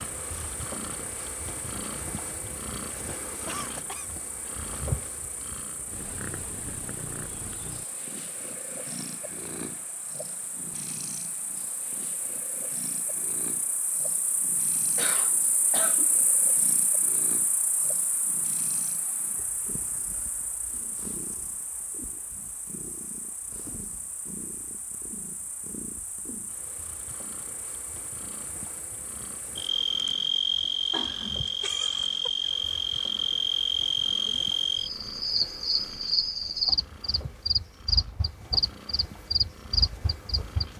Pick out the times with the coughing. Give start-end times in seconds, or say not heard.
3.5-4.1, 14.9-16.1, 30.9-31.4.